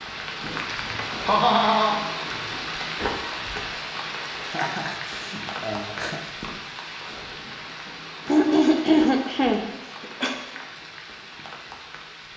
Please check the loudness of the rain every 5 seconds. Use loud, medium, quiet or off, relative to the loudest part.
loud, medium, medium.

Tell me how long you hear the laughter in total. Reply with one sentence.
You can hear the laughter for 5 seconds altogether.